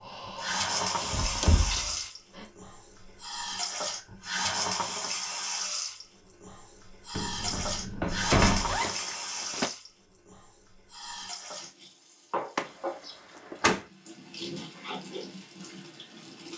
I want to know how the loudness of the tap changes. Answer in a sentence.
The loudness of the tap goes down.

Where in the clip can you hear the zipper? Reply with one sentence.
The zipper can be heard from 8.7 to 9.8 s.